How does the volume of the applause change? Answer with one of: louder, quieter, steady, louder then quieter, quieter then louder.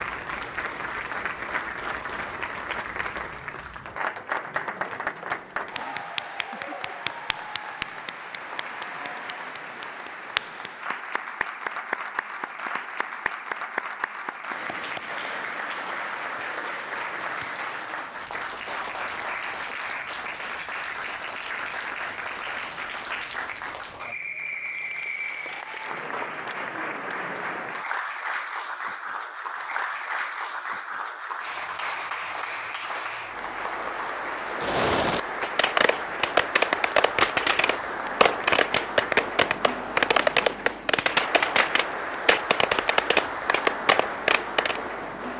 steady.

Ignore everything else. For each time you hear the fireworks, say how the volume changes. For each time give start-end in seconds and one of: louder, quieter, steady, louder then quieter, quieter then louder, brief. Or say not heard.
34.5-44.8 steady.